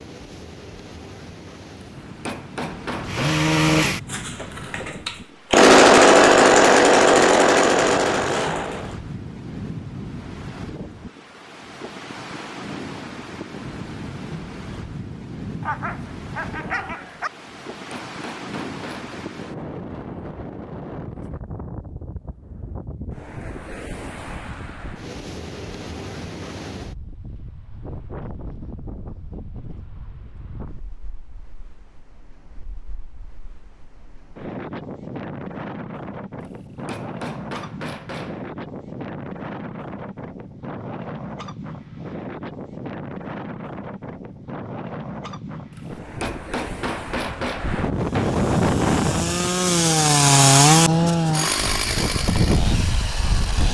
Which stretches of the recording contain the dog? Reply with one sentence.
You can hear the dog from 15.6 to 17.3 s.